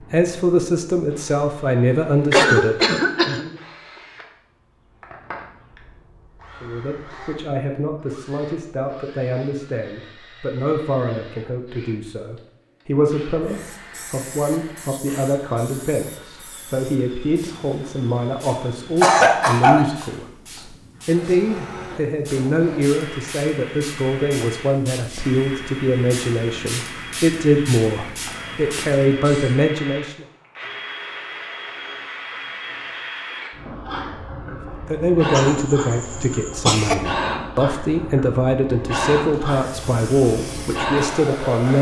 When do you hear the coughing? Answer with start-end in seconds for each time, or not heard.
2.3-3.4, 19.0-19.9, 35.3-37.0.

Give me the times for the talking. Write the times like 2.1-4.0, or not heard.
0.1-3.6, 6.5-30.2, 34.5-41.7.